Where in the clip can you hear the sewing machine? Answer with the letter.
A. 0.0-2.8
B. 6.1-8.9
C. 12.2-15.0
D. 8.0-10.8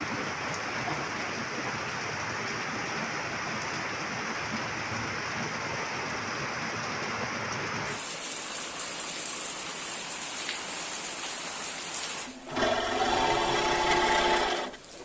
C.